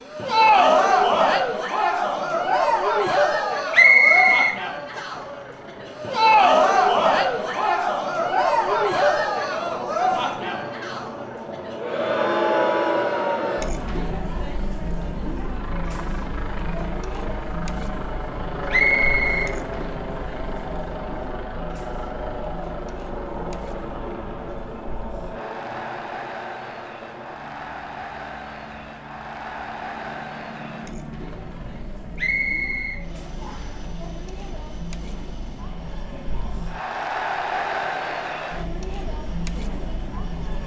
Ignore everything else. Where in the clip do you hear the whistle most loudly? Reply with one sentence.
The volume of the whistle peaks at 4 seconds.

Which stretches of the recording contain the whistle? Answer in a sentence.
The whistle can be heard from 3.7 to 5.0 s, from 18.7 to 19.6 s and from 32.1 to 33.8 s.